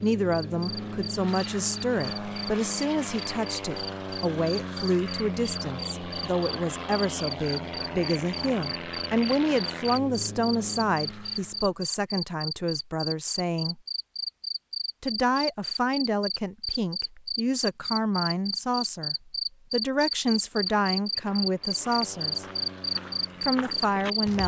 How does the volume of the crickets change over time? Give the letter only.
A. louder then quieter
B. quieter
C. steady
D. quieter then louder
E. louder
E.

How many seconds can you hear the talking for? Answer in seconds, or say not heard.
22 s.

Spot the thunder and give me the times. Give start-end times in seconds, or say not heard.
not heard.